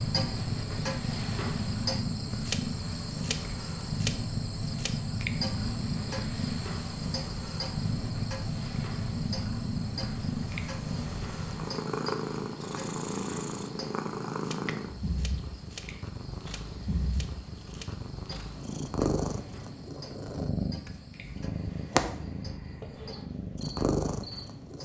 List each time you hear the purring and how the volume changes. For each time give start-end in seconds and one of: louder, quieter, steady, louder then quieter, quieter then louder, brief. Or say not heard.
0.0-24.8 steady.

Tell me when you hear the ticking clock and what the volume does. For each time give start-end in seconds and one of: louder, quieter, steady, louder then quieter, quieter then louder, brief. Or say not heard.
0.0-24.8 quieter.